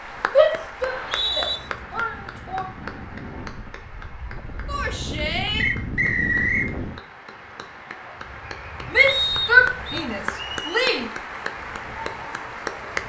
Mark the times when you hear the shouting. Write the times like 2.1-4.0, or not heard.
0.3-2.6, 4.7-5.7, 8.9-11.1.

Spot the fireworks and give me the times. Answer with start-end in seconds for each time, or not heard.
not heard.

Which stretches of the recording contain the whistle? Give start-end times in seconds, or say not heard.
0.8-1.6, 5.5-6.7, 9.1-10.1.